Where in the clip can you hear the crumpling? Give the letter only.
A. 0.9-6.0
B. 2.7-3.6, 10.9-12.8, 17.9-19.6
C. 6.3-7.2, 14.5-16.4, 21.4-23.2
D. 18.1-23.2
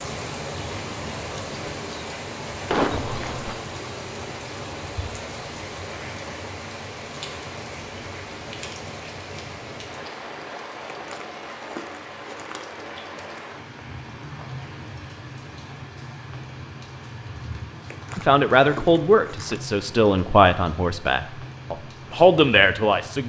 B.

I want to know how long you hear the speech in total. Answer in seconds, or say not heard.
5 s.